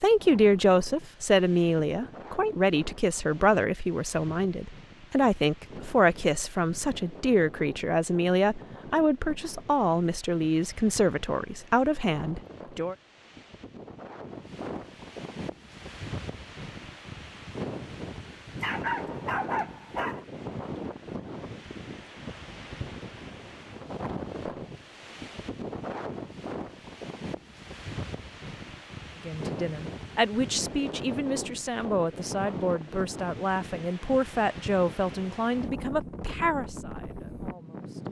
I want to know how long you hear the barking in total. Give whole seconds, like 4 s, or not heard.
2 s.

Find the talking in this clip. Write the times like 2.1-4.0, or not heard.
0.0-12.9, 29.2-38.0.